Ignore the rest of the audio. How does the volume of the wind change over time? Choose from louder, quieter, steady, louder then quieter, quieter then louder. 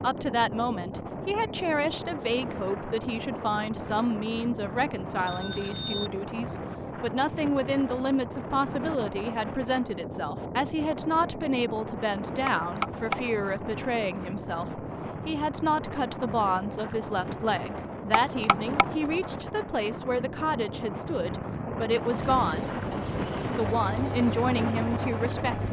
steady.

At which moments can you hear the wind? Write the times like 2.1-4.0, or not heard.
0.0-25.6.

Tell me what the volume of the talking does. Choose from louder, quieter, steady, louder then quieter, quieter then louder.
steady.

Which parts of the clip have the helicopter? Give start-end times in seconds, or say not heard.
22.0-25.6.